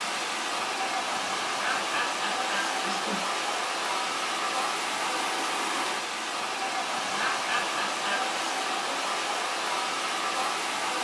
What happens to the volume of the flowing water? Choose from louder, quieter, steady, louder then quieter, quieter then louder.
steady.